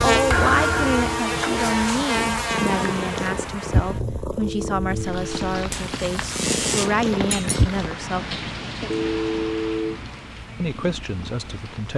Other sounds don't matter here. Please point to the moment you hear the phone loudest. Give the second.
9 s.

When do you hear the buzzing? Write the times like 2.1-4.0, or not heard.
0.0-7.0.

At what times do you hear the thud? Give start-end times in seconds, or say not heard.
0.3-1.2, 7.3-7.7.